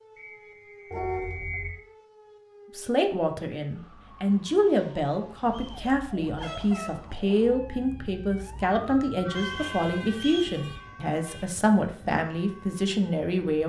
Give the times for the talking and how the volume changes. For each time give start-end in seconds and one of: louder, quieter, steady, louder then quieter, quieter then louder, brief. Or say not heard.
2.8-13.6 steady.